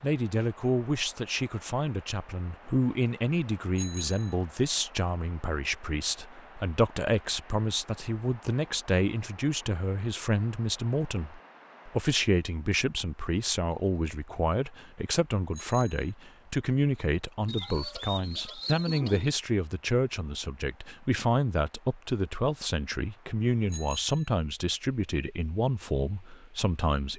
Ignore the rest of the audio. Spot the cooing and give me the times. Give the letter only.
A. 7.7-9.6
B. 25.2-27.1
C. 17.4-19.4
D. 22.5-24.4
C.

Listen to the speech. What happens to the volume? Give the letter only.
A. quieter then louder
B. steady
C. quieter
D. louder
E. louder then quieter
B.